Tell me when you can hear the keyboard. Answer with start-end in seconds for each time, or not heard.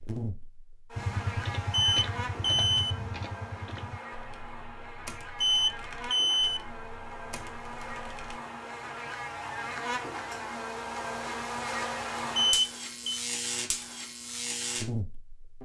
0.9-8.4.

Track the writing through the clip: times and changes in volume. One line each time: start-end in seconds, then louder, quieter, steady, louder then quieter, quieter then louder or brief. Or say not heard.
not heard.